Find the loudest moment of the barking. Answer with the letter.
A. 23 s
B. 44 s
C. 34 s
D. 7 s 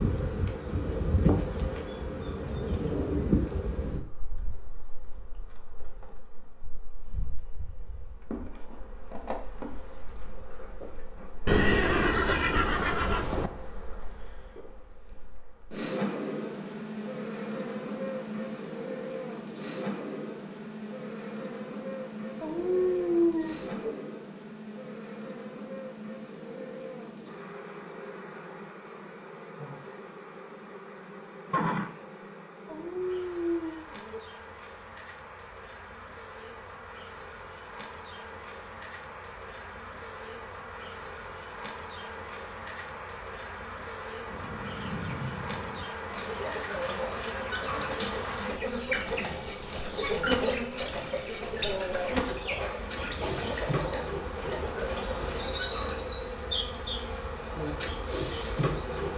A.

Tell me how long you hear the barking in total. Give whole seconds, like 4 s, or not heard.
3 s.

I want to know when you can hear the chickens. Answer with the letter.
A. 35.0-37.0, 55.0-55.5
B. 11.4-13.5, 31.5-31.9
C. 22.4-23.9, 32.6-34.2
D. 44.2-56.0
D.